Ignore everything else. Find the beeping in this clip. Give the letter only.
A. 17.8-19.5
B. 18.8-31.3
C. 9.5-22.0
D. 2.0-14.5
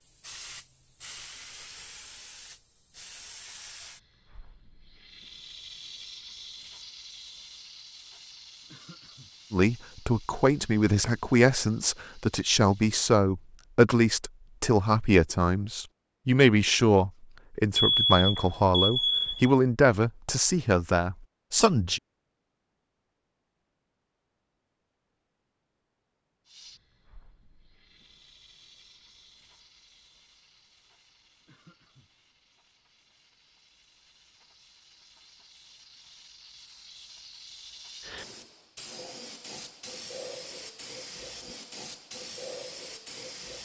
A.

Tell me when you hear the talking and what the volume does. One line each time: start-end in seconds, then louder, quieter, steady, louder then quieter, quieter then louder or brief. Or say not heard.
9.5-22.0 steady.